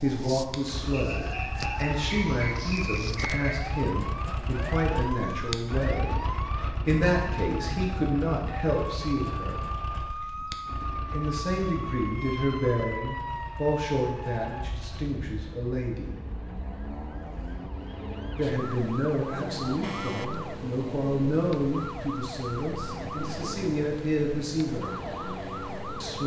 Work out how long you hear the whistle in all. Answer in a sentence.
You can hear the whistle for 3 seconds altogether.